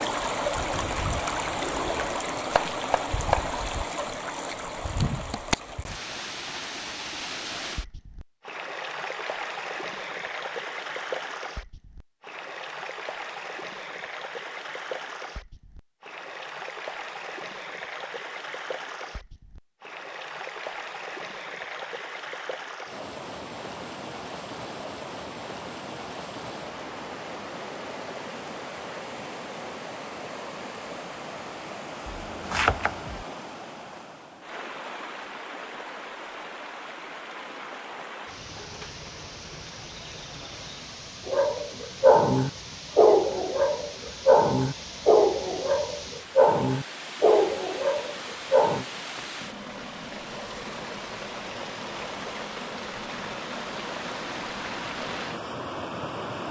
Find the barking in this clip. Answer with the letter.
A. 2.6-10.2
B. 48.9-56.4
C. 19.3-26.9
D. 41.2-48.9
D.